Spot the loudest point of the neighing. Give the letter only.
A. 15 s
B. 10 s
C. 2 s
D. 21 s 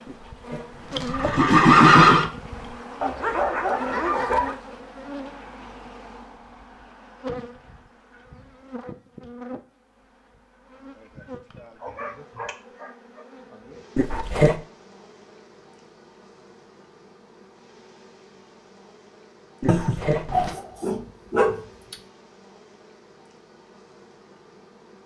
C.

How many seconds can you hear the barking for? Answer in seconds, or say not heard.
5 s.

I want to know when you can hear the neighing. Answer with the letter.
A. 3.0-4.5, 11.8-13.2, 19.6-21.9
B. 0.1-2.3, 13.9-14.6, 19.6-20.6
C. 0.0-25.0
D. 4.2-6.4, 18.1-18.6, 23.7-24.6
B.